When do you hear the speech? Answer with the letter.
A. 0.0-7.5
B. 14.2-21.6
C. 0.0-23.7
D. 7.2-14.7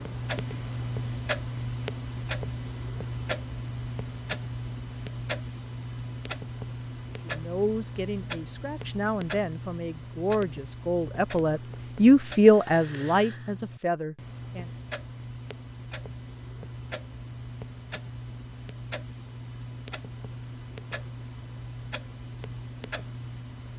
D.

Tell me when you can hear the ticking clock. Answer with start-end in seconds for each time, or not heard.
0.0-23.7.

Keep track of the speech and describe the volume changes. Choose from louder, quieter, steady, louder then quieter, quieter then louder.
louder then quieter.